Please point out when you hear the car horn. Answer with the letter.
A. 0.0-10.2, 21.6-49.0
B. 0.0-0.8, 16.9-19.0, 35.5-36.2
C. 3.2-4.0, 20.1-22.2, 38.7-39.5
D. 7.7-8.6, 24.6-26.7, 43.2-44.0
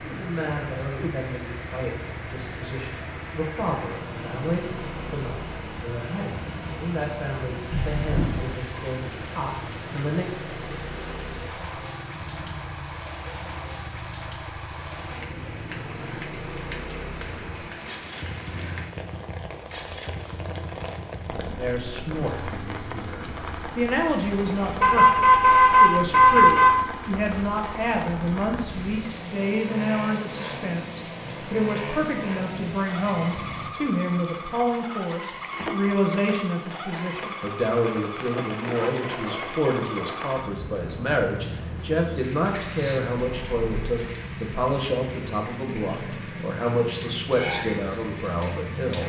D.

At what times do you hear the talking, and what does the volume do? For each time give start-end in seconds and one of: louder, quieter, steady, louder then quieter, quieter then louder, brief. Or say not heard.
0.0-10.2 steady
21.6-49.0 steady.